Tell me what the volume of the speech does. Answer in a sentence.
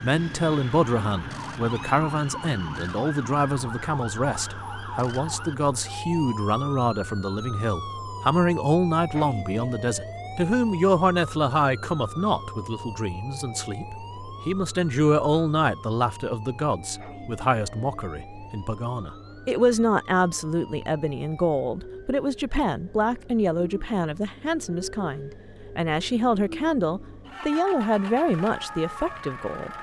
The volume of the speech stays about the same.